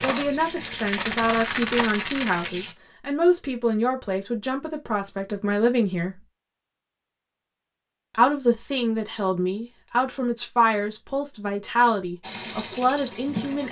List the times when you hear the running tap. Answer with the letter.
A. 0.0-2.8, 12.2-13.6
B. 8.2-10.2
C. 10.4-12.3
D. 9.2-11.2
A.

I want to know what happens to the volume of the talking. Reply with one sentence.
The loudness of the talking stays about the same.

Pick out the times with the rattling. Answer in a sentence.
You can hear the rattling from 0.6 to 2.5 s.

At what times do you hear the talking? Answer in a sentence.
You can hear the talking from 0.0 to 6.2 s and from 8.1 to 13.6 s.